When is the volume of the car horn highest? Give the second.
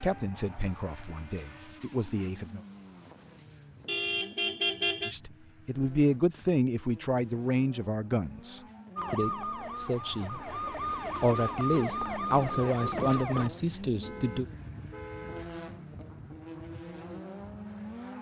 5 s.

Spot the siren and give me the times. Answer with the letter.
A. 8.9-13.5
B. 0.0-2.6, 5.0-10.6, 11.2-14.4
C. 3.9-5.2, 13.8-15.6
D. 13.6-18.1
A.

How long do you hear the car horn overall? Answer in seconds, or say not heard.
3 s.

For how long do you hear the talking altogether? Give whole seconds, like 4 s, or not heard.
11 s.